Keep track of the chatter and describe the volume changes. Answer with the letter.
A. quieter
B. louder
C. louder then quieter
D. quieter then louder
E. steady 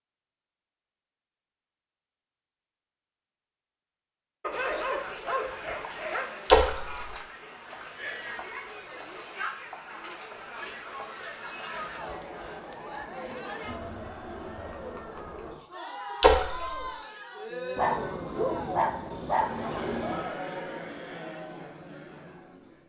E.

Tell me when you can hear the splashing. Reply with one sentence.
The splashing can be heard from 6.5 to 7.0 s and from 16.2 to 16.8 s.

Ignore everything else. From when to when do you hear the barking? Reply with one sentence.
You can hear the barking from 4.4 to 6.3 s and from 17.8 to 20.4 s.